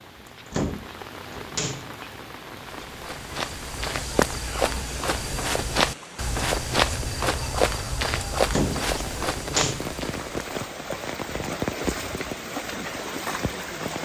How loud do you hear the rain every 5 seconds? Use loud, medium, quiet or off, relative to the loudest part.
medium, medium, loud.